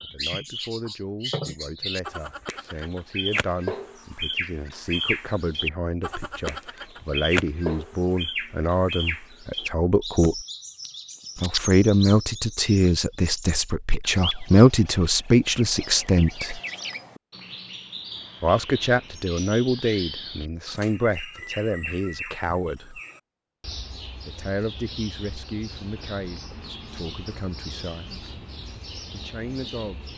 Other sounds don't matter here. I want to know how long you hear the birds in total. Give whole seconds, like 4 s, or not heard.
30 s.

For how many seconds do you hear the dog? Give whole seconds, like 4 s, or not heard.
not heard.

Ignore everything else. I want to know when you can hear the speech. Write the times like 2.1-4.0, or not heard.
0.0-10.4, 11.3-16.6, 18.4-23.0, 24.2-28.2, 29.1-30.0.